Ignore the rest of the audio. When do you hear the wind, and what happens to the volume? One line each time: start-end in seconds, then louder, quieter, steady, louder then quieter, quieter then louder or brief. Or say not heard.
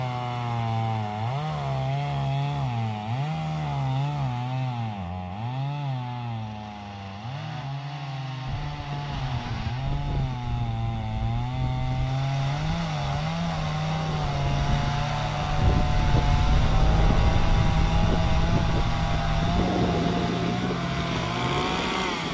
8.4-22.2 louder.